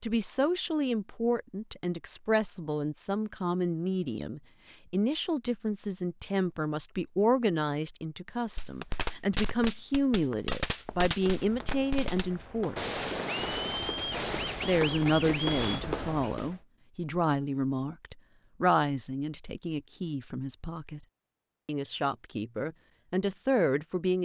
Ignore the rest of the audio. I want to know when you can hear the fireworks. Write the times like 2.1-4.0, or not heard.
8.6-15.8.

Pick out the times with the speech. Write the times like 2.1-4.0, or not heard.
0.0-12.9, 14.7-21.0, 21.6-24.1.